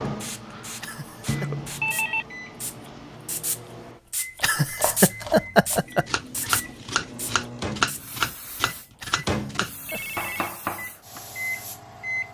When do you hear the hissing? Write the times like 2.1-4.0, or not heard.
0.0-12.3.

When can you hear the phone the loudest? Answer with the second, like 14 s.
2 s.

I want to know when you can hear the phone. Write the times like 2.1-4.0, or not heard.
0.5-2.2, 9.8-10.6.